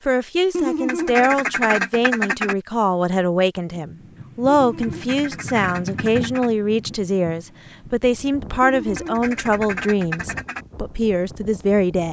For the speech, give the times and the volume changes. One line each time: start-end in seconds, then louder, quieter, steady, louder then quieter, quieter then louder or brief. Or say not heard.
0.1-12.0 steady.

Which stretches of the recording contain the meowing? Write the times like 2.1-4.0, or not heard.
not heard.